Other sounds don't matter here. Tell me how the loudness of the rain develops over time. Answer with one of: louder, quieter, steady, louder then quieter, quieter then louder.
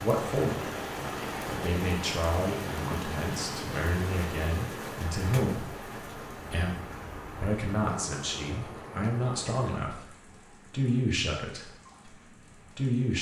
quieter.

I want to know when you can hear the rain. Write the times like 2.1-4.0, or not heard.
0.0-13.1.